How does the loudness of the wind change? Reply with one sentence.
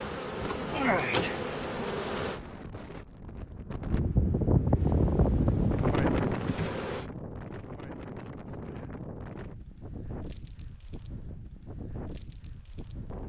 The volume of the wind goes up, then down.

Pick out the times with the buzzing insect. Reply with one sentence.
The buzzing insect can be heard from 0.0 to 2.4 s and from 4.8 to 7.1 s.